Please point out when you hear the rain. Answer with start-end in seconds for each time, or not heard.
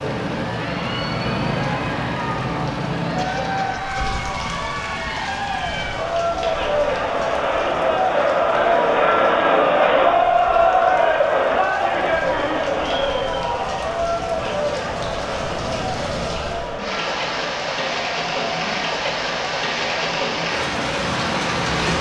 0.0-21.9.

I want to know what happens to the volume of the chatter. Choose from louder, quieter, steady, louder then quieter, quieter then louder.
louder then quieter.